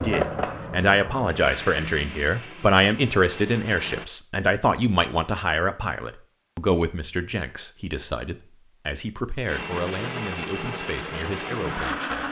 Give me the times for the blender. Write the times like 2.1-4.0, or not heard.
0.0-4.0, 9.4-12.2.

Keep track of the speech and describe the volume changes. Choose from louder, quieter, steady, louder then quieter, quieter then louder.
quieter.